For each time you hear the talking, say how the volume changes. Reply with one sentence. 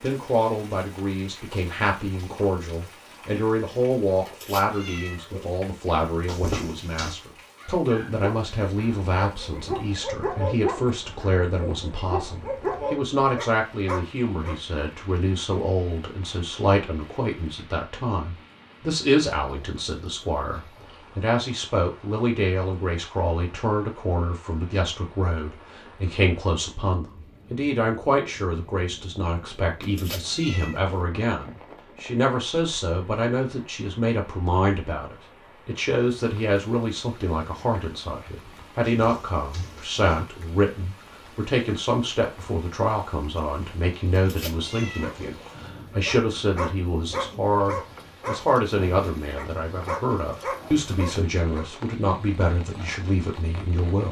The talking can be heard from 0.0 to 54.0 s, at a steady volume.